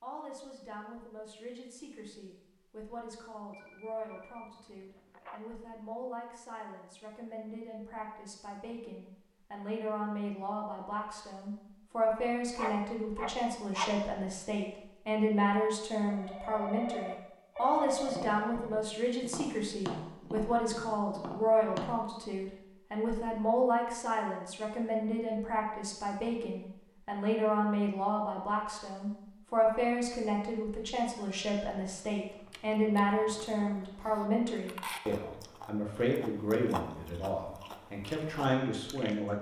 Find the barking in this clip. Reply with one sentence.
The barking can be heard from 12.6 to 13.9 s.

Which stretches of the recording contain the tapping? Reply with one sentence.
You can hear the tapping from 17.9 to 21.9 s.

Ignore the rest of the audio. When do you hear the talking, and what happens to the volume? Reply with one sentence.
The talking can be heard from 0.0 to 39.3 s, getting louder.